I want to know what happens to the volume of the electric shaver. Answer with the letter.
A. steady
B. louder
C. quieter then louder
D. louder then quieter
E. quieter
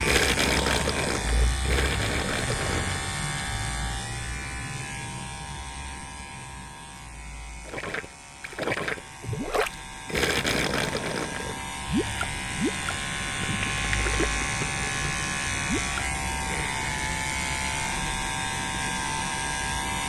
C.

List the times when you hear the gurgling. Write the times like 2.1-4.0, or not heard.
0.0-3.1, 7.7-16.8.